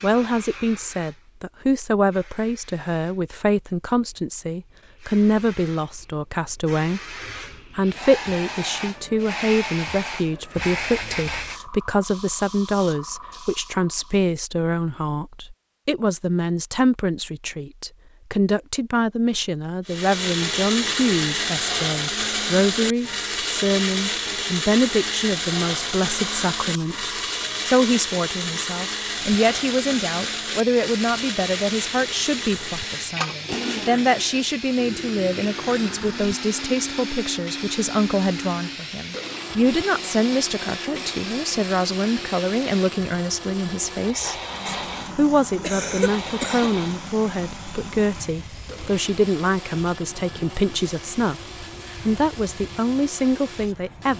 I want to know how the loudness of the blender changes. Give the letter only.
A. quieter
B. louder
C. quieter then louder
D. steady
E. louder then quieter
A.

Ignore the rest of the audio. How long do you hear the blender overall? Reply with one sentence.
You can hear the blender for 34 seconds altogether.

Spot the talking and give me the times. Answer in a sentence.
You can hear the talking from 0.0 to 7.2 s and from 7.8 to 54.1 s.